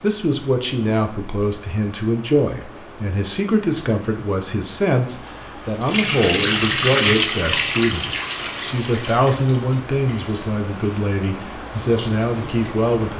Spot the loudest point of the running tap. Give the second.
7 s.